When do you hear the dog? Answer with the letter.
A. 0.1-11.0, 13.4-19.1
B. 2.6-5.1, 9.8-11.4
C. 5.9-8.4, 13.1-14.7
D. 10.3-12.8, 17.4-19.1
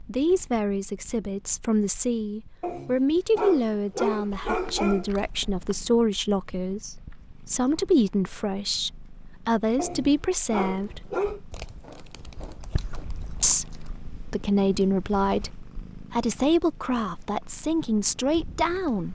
B.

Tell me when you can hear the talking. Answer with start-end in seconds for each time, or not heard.
0.1-11.0, 13.4-19.1.